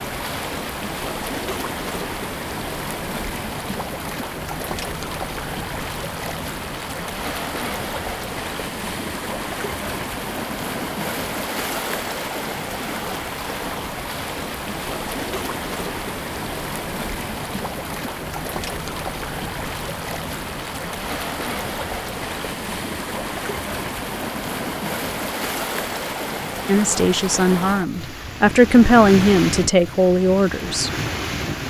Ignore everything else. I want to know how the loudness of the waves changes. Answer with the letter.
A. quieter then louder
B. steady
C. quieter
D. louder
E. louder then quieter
B.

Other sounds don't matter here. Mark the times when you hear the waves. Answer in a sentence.
The waves can be heard from 0.0 to 31.6 s.